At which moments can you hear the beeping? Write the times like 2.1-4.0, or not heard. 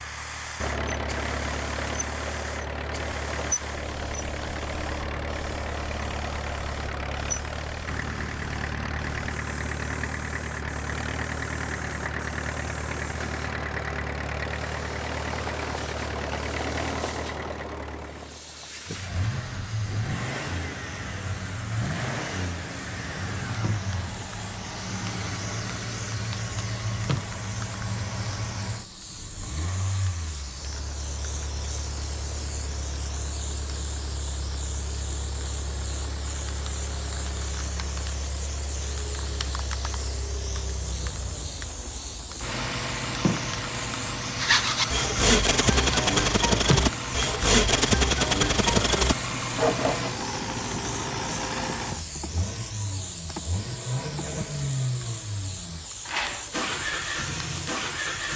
not heard.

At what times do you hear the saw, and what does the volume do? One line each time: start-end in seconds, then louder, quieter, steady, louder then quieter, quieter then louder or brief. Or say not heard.
44.4-50.1 steady.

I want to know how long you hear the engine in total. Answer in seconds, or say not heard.
58 s.